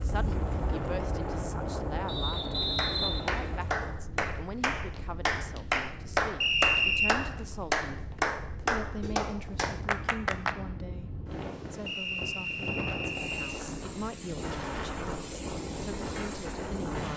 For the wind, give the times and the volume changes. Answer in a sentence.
The wind can be heard from 0.0 to 17.1 s, getting quieter then louder.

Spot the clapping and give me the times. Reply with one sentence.
You can hear the clapping from 2.8 to 10.6 s.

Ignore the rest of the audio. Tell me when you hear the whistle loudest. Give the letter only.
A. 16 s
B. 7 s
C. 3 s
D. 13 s
B.